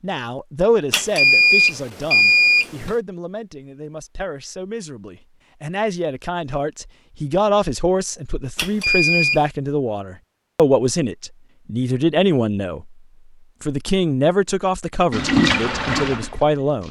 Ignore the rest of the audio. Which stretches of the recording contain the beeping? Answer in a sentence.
You can hear the beeping from 0.9 to 3.0 s and from 8.6 to 9.4 s.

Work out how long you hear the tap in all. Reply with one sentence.
The tap can be heard for 2 seconds in total.